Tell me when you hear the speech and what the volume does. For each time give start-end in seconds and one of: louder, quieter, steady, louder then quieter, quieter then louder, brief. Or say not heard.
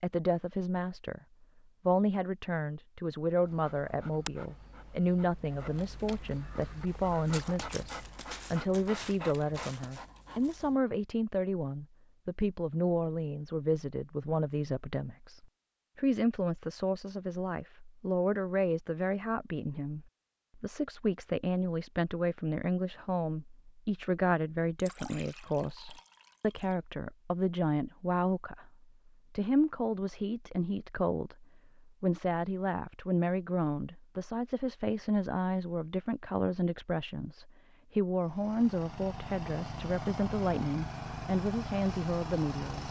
0.0-1.2 brief
1.9-28.7 steady
29.3-42.8 steady.